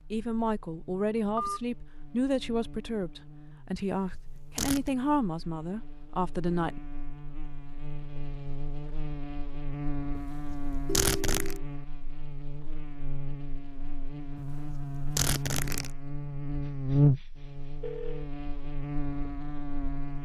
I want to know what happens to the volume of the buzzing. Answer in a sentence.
The volume of the buzzing goes up.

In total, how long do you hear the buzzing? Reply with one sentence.
The buzzing can be heard for 20 seconds in total.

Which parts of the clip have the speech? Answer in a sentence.
You can hear the speech from 0.1 to 6.8 s.